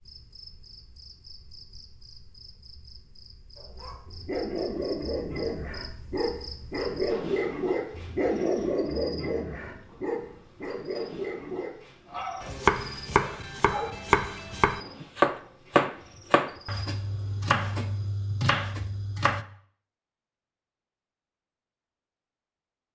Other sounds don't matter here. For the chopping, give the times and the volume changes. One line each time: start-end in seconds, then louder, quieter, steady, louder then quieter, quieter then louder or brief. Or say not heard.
12.4-19.4 louder then quieter.